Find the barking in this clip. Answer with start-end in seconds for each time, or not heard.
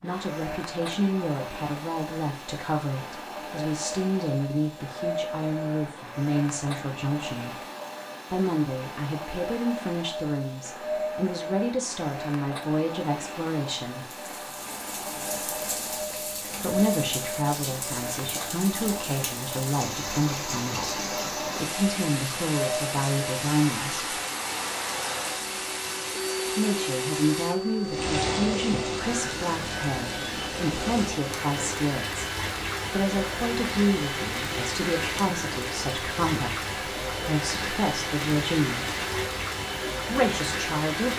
not heard.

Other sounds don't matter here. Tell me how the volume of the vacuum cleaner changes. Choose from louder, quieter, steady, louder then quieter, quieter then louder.
steady.